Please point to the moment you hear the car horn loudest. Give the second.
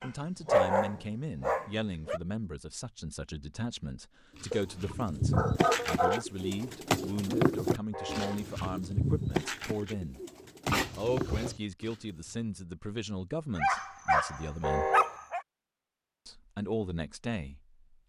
15 s.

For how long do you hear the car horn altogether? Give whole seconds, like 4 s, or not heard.
2 s.